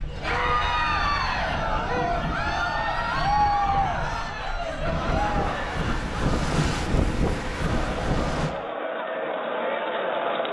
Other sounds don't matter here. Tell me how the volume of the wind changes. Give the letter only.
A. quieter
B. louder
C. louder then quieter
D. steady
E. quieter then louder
B.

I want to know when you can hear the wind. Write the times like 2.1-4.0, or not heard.
0.0-8.6.